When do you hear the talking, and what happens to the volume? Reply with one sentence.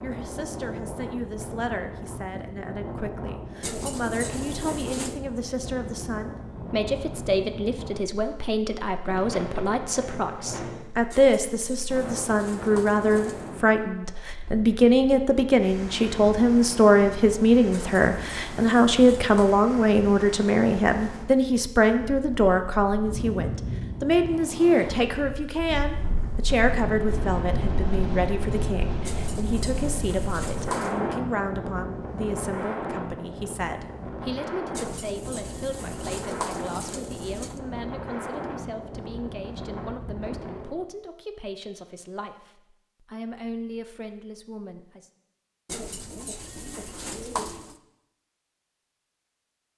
You can hear the talking from 0.0 to 45.1 s, getting louder then quieter.